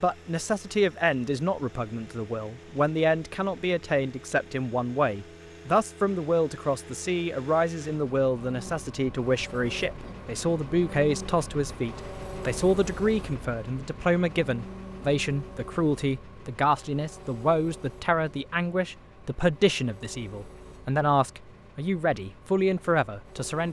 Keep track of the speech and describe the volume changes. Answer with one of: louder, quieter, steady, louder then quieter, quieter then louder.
steady.